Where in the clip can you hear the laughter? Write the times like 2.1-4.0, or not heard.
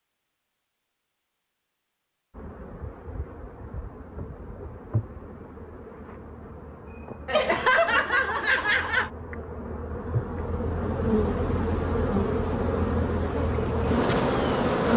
7.2-9.1.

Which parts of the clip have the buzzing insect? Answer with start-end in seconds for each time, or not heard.
2.3-14.9.